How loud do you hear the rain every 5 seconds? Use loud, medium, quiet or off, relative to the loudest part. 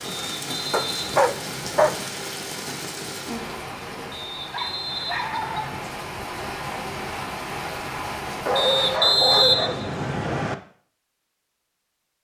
loud, loud, off.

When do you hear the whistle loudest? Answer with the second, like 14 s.
9 s.